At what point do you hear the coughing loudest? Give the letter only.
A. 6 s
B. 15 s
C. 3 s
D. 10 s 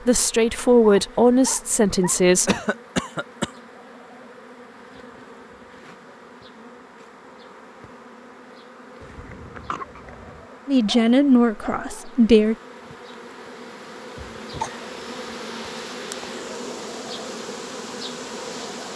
C.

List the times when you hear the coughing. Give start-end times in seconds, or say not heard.
2.5-3.5, 9.0-10.4, 14.2-14.8.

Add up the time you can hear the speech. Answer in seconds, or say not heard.
4 s.